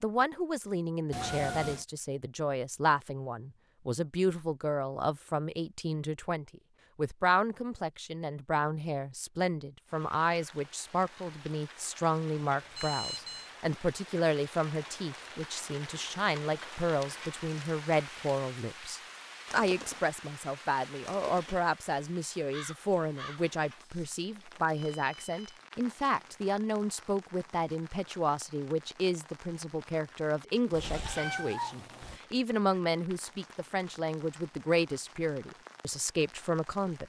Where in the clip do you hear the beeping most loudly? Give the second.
13 s.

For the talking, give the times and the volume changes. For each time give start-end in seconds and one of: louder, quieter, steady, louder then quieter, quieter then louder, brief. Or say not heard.
0.0-37.0 steady.